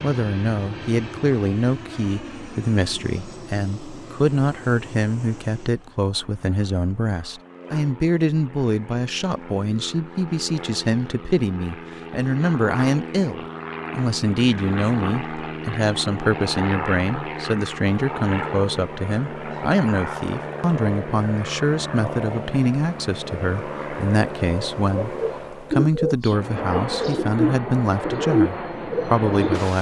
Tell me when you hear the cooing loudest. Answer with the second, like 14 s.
28 s.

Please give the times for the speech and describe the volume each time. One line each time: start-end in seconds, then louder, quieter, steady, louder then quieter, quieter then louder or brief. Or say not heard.
0.0-29.7 steady.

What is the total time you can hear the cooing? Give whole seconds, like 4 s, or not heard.
5 s.